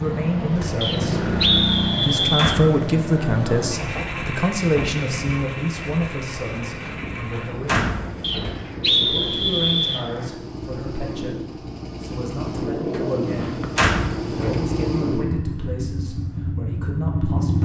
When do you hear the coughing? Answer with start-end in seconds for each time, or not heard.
not heard.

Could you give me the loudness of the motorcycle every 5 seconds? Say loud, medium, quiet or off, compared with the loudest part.
loud, medium, loud, loud.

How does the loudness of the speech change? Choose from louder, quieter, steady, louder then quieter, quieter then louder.
quieter.